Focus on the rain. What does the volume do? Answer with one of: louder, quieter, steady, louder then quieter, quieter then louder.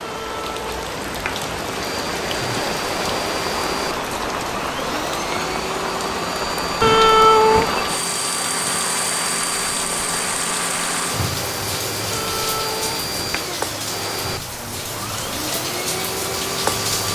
steady.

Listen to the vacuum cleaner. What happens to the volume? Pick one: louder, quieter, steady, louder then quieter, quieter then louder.
steady.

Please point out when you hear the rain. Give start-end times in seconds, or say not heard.
0.0-17.1.